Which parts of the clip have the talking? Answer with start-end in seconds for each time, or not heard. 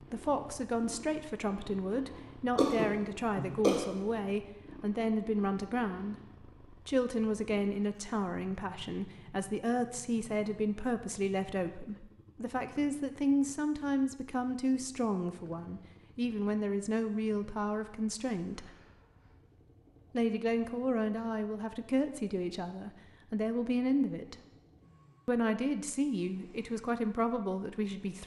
0.1-18.8, 20.1-24.4, 25.2-28.2.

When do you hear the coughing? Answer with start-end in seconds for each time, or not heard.
2.5-3.9.